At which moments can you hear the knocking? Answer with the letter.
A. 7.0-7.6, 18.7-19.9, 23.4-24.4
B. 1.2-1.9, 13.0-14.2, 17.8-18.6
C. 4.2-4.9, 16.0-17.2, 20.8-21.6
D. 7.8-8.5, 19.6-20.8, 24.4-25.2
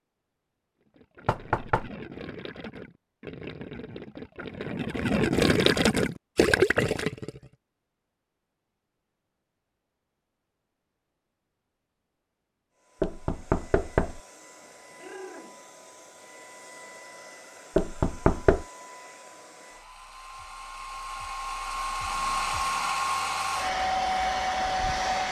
B.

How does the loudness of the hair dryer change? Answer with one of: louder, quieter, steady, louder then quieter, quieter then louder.
louder.